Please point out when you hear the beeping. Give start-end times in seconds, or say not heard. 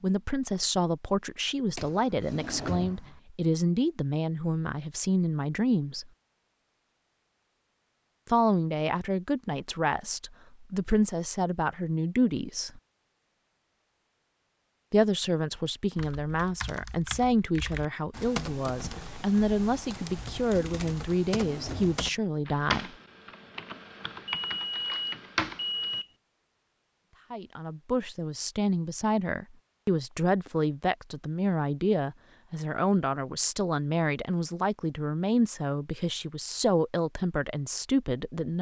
24.2-26.1.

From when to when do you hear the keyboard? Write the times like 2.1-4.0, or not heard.
15.9-26.0.